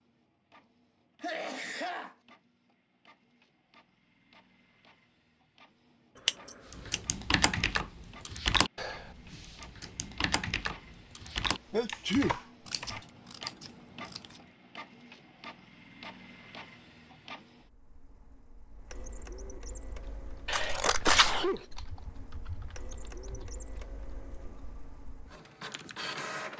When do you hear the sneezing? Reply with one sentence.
You can hear the sneezing from 1.2 to 2.1 s, from 11.3 to 12.3 s and from 20.4 to 21.6 s.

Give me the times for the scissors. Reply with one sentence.
You can hear the scissors from 6.2 to 7.0 s, from 12.7 to 14.4 s and from 20.5 to 21.6 s.